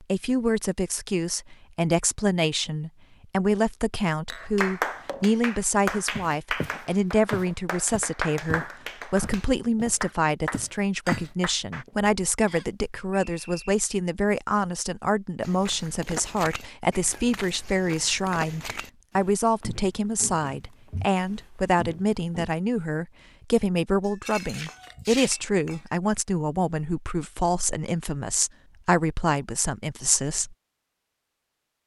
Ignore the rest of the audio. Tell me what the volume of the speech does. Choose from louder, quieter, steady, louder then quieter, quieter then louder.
steady.